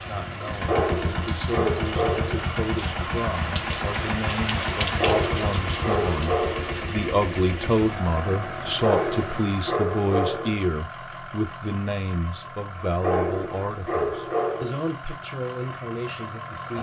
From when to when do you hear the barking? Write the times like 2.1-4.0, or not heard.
0.7-2.5, 5.0-6.8, 8.8-10.6, 13.0-14.8.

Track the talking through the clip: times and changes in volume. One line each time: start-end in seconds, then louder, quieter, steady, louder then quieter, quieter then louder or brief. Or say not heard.
0.0-16.7 louder then quieter.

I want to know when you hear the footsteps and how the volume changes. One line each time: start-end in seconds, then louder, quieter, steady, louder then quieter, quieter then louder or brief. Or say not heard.
not heard.